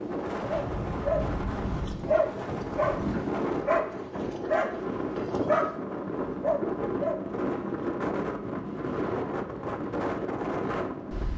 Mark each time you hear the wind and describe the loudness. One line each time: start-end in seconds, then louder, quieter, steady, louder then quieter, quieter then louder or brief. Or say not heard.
0.0-11.3 steady.